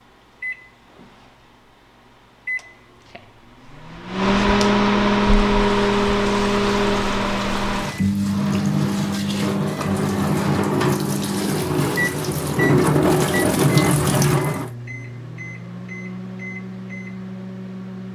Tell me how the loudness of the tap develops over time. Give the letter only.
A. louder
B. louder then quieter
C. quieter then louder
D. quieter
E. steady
A.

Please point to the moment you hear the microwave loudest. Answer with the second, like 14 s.
5 s.